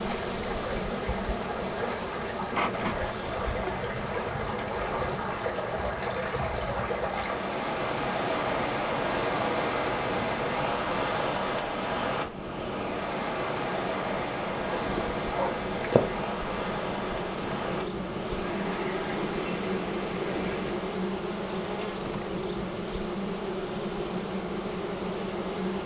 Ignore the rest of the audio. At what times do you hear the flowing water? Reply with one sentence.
You can hear the flowing water from 0.0 to 20.9 s.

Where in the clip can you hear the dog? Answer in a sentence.
You can hear the dog from 14.7 to 16.0 s.